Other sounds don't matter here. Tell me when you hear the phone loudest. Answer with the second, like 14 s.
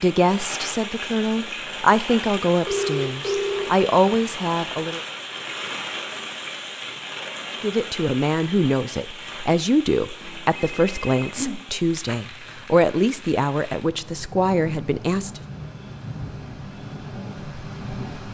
3 s.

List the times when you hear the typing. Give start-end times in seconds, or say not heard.
not heard.